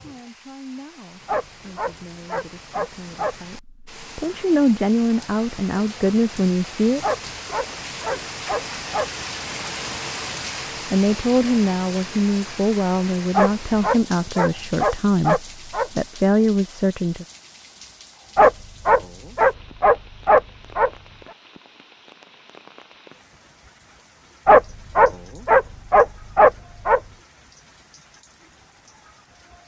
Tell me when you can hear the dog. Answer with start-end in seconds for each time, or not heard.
1.2-3.4, 7.0-9.1, 13.3-15.9, 18.4-20.9, 24.4-27.0.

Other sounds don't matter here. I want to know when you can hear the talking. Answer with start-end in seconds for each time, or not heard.
0.0-7.1, 10.8-17.2.